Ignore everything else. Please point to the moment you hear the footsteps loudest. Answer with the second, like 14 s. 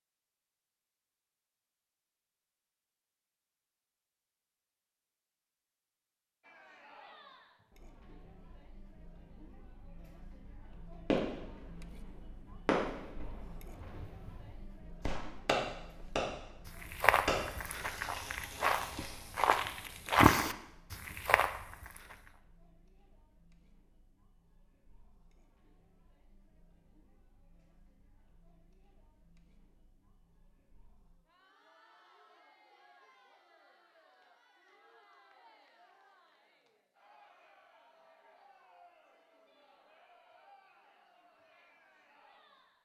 20 s.